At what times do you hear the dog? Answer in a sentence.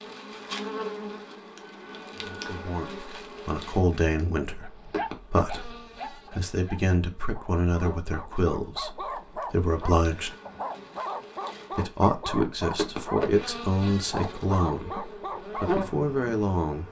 The dog can be heard from 4.6 to 15.8 s.